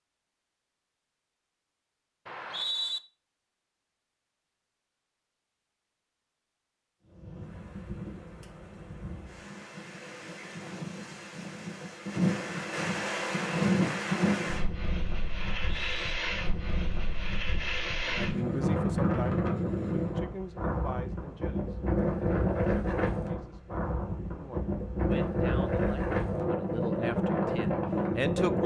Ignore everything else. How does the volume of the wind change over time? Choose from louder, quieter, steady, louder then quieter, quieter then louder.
louder.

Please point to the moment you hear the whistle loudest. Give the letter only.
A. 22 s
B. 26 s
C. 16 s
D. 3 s
D.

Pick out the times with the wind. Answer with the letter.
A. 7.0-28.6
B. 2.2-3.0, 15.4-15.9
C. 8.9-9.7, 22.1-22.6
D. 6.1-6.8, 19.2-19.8
A.